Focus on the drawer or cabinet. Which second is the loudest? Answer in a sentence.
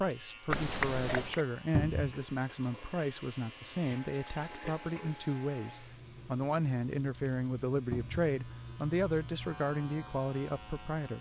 The volume of the drawer or cabinet peaks at 2 seconds.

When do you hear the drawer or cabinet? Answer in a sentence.
You can hear the drawer or cabinet from 1.7 to 2.1 s and from 7.9 to 8.3 s.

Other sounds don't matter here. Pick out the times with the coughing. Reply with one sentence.
You can hear the coughing from 0.5 to 1.4 s.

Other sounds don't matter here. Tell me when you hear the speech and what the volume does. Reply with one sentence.
The speech can be heard from 0.0 to 11.1 s, at a steady volume.